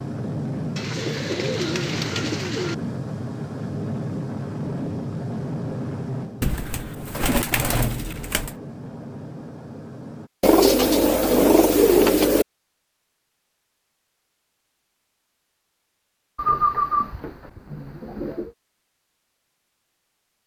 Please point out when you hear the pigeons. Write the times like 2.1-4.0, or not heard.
0.8-2.8, 6.4-8.5, 10.4-12.4, 16.4-18.5.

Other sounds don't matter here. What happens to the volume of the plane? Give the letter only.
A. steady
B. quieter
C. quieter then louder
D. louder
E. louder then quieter
B.